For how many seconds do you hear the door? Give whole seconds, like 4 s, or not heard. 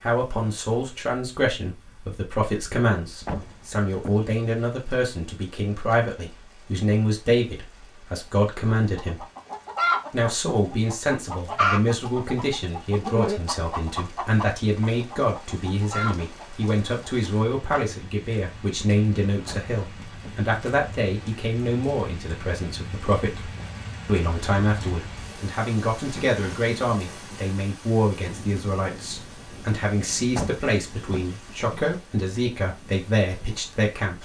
3 s.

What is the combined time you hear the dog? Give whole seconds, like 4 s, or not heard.
not heard.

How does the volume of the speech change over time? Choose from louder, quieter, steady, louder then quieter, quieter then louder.
steady.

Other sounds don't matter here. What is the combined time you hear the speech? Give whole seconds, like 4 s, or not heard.
33 s.